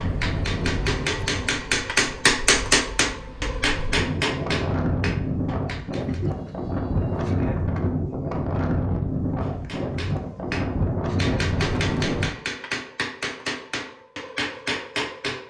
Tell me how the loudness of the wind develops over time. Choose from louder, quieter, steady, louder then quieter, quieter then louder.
louder.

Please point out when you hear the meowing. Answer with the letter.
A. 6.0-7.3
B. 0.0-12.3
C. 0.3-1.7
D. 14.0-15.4
A.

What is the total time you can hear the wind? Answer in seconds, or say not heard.
12 s.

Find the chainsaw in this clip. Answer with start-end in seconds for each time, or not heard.
not heard.